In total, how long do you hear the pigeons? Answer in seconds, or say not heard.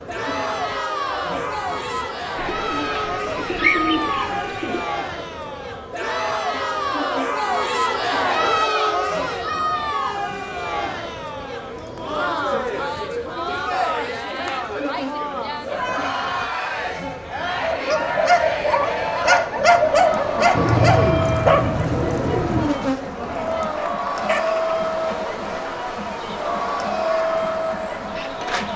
5 s.